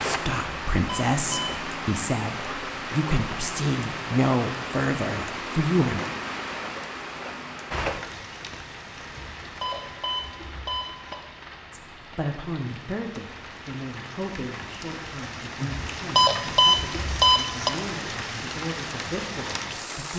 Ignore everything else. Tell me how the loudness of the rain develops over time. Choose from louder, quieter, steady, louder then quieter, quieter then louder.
quieter then louder.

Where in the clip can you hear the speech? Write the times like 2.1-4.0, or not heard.
0.0-6.0, 11.7-20.1.